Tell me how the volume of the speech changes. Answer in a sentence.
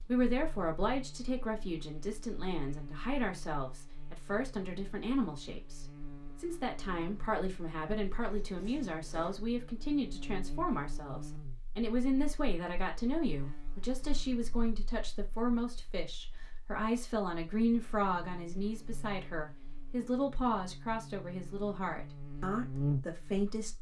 The volume of the speech stays about the same.